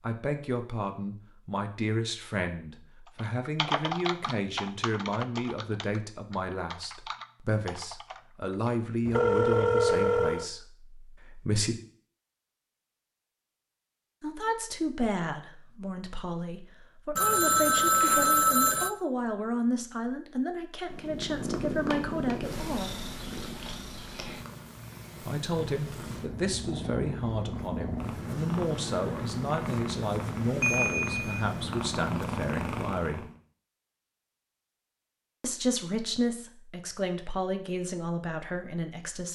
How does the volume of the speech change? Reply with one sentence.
The volume of the speech stays about the same.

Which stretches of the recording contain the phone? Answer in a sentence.
You can hear the phone from 9.1 to 10.5 s, from 17.1 to 18.9 s and from 30.6 to 31.4 s.